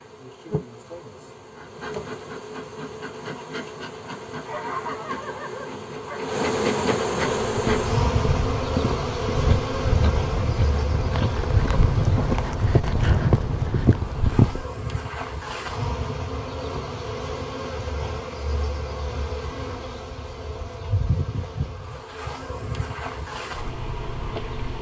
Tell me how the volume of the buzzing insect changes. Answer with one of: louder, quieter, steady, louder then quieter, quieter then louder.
louder then quieter.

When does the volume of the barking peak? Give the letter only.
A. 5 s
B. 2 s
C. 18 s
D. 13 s
A.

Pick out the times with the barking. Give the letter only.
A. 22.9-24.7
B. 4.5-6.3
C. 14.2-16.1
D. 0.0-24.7
B.